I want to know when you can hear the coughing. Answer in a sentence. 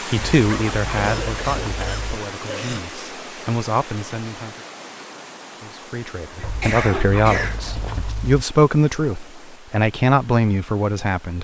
The coughing can be heard from 0.9 to 2.8 s and from 6.4 to 7.6 s.